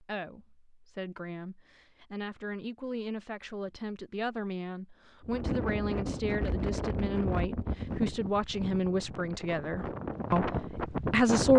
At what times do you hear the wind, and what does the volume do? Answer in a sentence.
You can hear the wind from 5.2 to 11.5 s, getting quieter then louder.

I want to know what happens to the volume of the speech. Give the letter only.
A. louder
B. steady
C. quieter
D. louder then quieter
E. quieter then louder
A.